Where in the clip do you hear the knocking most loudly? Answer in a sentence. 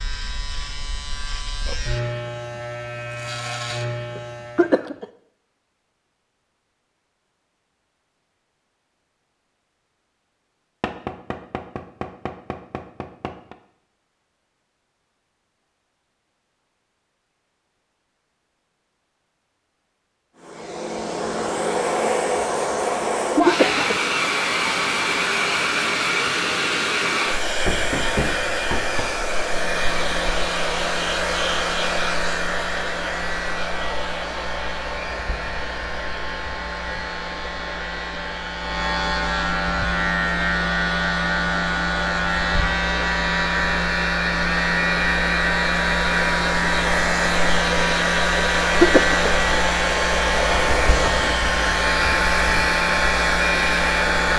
The loudest moment of the knocking is at 28 seconds.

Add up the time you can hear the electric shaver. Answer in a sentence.
The electric shaver can be heard for 30 seconds in total.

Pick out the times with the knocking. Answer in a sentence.
You can hear the knocking from 10.8 to 13.6 s, from 27.6 to 29.1 s and from 50.5 to 51.4 s.